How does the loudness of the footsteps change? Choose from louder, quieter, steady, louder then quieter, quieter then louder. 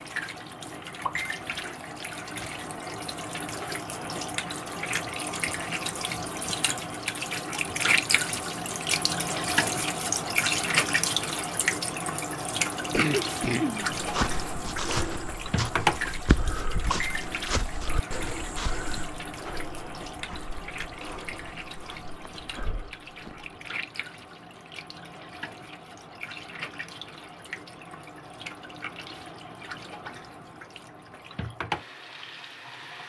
quieter.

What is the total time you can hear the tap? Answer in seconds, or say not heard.
33 s.